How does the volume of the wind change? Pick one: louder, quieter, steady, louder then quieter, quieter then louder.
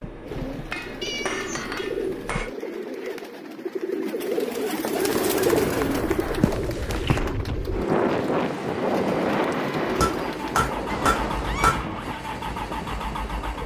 louder then quieter.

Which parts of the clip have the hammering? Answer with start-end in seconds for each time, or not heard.
0.0-2.5, 5.0-7.3, 10.0-11.8.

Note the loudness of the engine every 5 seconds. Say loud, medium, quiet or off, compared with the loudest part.
off, loud, loud.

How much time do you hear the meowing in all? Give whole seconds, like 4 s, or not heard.
3 s.